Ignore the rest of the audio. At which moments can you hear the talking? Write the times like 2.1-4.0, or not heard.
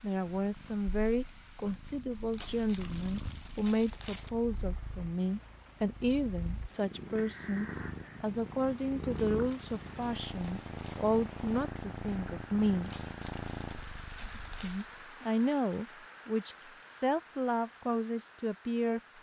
0.0-12.9, 14.6-19.0.